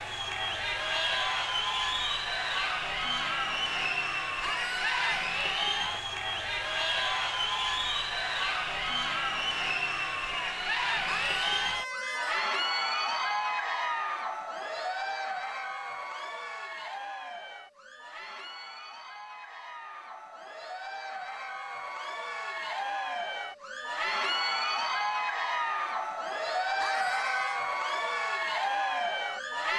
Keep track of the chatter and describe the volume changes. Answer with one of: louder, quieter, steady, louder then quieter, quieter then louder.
quieter then louder.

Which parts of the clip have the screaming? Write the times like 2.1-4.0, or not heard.
4.4-5.3, 11.1-12.5, 26.8-27.6.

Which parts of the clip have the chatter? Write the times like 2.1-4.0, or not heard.
0.0-29.7.